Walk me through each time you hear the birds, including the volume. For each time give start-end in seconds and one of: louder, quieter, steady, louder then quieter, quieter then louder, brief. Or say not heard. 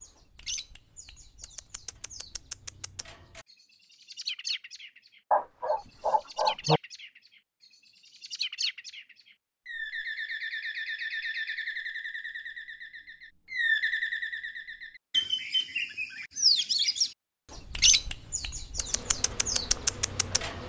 0.0-20.6 louder.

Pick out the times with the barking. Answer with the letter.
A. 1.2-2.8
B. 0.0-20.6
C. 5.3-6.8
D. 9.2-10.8
C.